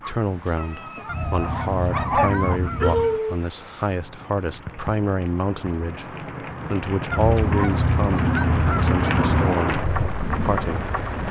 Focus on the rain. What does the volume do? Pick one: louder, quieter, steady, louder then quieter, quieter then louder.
louder.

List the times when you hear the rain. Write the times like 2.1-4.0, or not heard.
0.0-11.2.